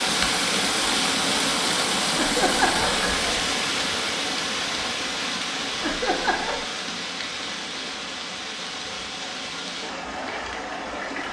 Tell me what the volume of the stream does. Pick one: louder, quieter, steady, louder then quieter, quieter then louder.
quieter.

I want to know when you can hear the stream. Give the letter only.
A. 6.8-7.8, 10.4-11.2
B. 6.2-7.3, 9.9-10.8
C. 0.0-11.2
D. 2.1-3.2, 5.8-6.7
C.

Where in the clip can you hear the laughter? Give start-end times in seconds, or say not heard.
2.1-3.2, 5.8-6.7.